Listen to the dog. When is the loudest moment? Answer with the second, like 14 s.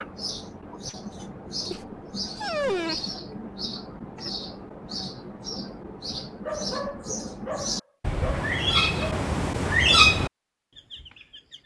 3 s.